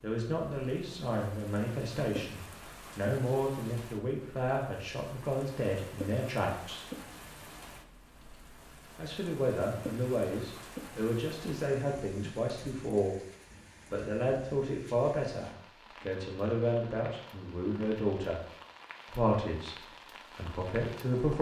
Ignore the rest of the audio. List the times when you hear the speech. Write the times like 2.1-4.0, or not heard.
0.0-6.8, 8.9-13.2, 13.9-18.4, 19.1-21.3.